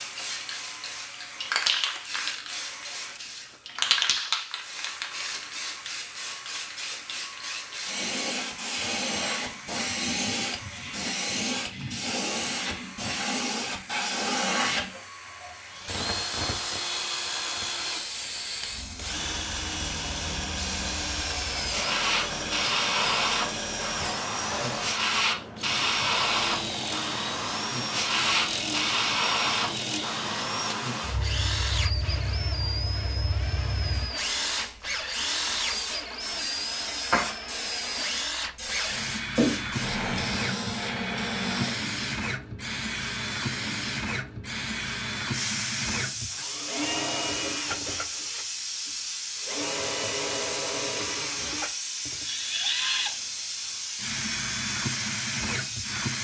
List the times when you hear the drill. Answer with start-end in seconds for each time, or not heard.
0.0-56.1.